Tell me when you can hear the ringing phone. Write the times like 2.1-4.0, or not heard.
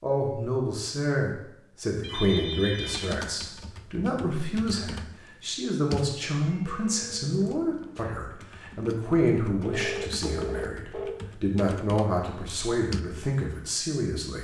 2.0-3.2, 6.4-8.0, 9.6-11.1.